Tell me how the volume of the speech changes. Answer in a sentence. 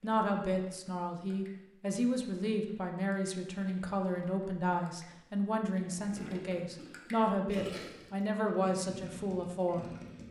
The loudness of the speech stays about the same.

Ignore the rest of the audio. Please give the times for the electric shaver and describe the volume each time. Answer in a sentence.
You can't hear the electric shaver here.